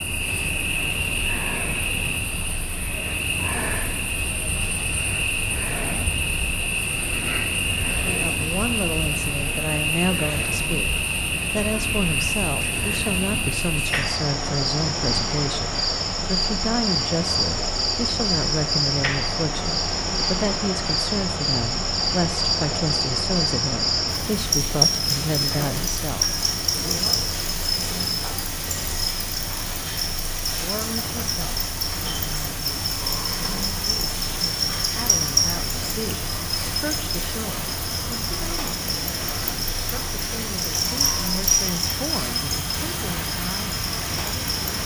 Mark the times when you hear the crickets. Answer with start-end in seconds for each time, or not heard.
0.0-44.8.